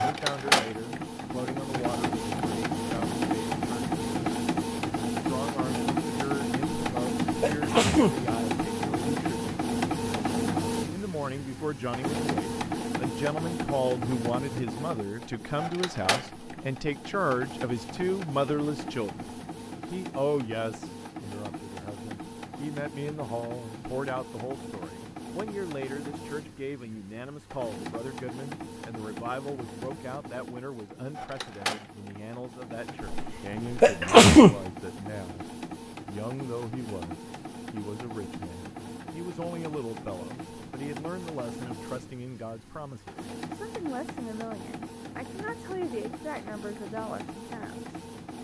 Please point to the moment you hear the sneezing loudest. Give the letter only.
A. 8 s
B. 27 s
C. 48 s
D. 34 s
D.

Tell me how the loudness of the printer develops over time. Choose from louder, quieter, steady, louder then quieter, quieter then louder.
quieter.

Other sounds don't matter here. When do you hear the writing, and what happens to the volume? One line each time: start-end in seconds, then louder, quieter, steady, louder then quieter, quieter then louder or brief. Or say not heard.
not heard.